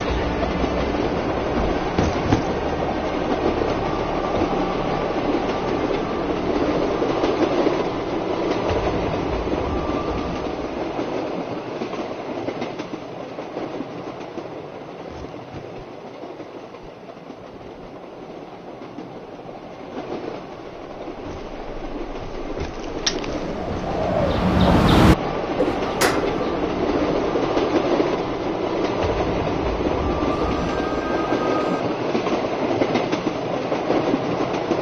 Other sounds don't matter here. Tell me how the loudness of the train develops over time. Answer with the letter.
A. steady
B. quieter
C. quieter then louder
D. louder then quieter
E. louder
C.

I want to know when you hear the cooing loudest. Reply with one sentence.
The volume of the cooing peaks at 25 seconds.